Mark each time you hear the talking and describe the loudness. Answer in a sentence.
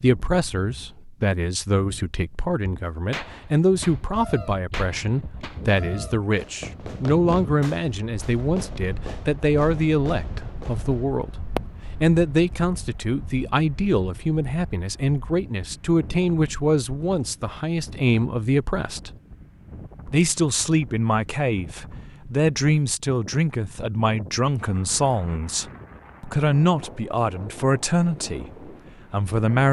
You can hear the talking from 0.0 to 19.1 s, at a steady volume; and from 20.1 to 29.6 s, at a steady volume.